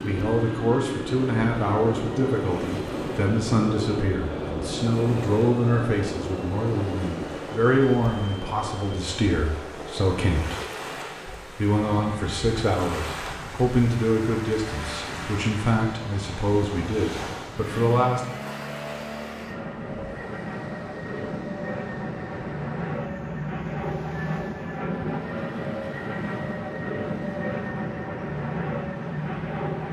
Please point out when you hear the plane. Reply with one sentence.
The plane can be heard from 0.0 to 29.8 s.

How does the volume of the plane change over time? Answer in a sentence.
The volume of the plane goes down, then up.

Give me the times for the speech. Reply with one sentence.
The speech can be heard from 0.0 to 10.6 s and from 11.6 to 18.4 s.